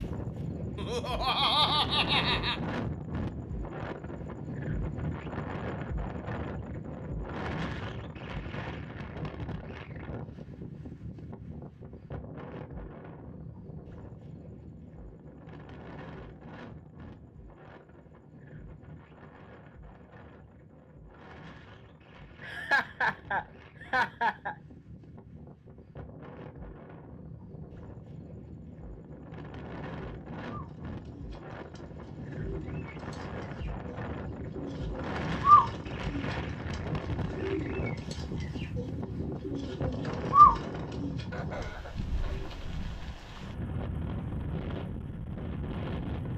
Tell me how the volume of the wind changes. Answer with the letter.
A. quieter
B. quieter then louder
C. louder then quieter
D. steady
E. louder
B.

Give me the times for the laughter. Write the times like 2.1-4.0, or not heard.
0.8-2.5, 22.4-24.6, 41.3-42.5.